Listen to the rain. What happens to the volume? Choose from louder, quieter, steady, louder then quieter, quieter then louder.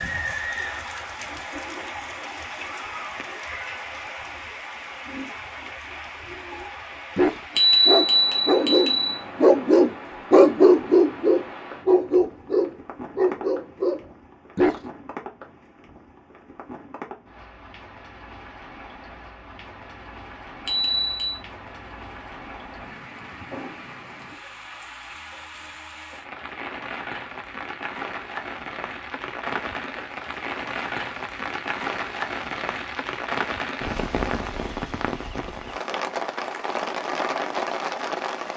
quieter then louder.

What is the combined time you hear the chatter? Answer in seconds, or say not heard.
not heard.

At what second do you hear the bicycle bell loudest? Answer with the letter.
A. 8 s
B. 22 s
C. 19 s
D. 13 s
A.